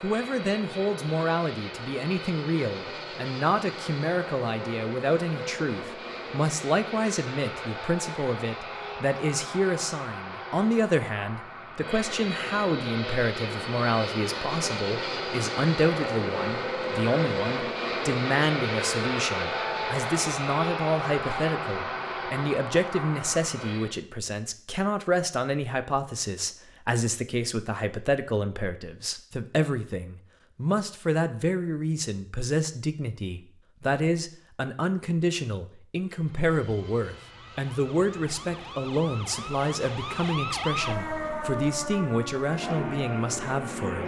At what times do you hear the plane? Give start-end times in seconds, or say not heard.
0.0-23.9, 36.0-44.0.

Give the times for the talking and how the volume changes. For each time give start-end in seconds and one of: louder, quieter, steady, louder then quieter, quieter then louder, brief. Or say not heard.
0.0-44.0 steady.